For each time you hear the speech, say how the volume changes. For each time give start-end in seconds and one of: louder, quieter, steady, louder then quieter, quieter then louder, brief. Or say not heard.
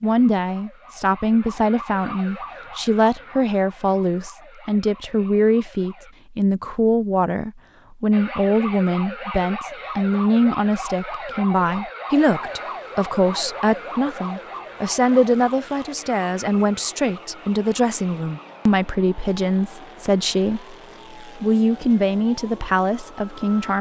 0.0-23.7 steady.